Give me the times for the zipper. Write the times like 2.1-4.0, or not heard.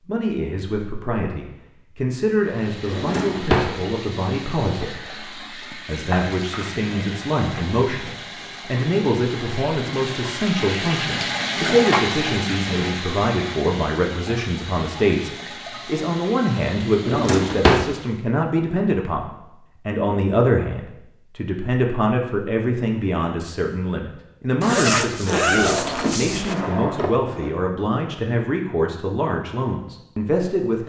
24.6-26.6.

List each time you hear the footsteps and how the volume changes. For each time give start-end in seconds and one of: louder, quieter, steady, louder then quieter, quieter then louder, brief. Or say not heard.
not heard.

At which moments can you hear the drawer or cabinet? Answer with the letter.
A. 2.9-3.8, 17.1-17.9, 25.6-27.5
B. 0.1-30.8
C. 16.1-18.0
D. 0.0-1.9
A.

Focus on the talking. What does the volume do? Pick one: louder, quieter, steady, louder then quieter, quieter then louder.
steady.